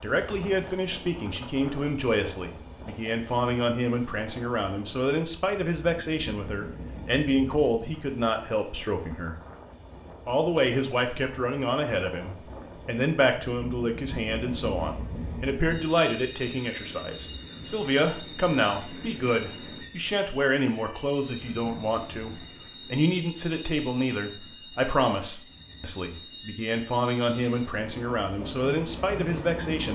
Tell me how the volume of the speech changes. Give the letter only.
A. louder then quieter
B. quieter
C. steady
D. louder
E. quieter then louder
C.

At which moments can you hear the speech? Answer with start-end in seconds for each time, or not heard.
0.0-9.3, 10.2-29.9.